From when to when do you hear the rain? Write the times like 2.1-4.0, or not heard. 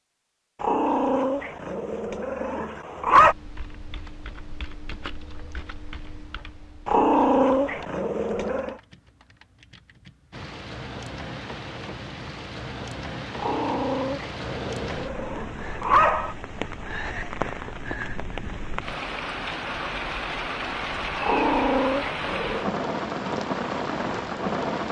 10.3-24.8.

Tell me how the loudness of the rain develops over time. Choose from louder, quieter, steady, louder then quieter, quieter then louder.
louder.